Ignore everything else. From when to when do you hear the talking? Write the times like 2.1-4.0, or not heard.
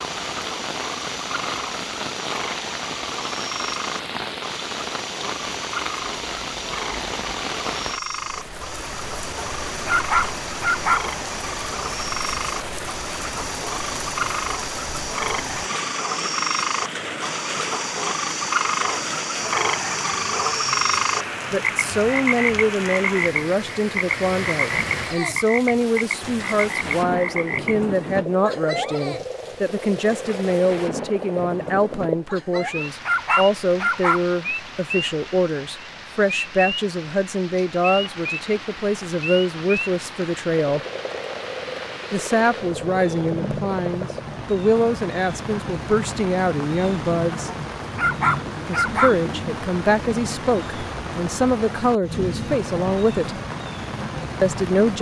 21.5-40.8, 42.1-47.5, 48.6-53.4, 54.4-54.9.